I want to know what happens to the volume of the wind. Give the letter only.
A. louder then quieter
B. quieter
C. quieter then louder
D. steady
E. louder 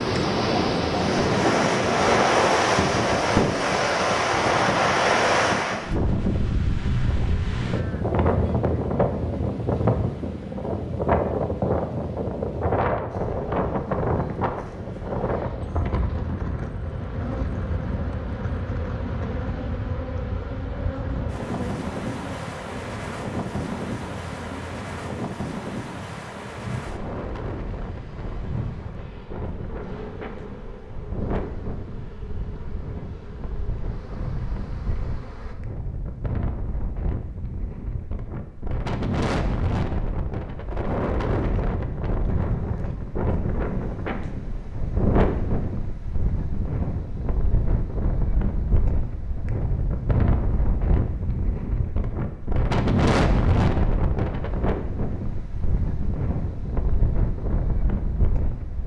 C.